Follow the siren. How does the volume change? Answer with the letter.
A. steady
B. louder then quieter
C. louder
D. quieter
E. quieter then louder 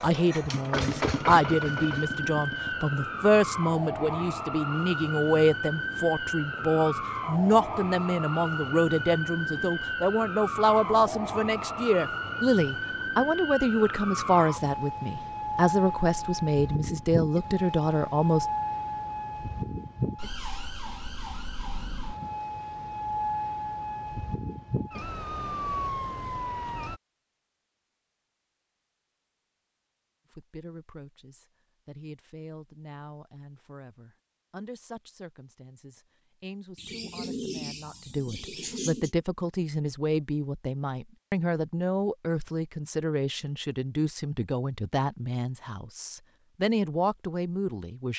A.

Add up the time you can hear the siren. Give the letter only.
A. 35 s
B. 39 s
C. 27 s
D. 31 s
C.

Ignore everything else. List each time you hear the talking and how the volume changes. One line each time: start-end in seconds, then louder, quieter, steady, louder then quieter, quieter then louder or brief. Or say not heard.
0.0-18.4 steady
30.3-48.1 louder.